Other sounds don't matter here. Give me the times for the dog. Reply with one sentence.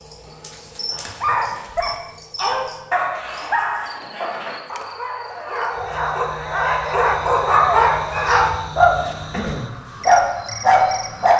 You can hear the dog from 0.9 to 11.3 s.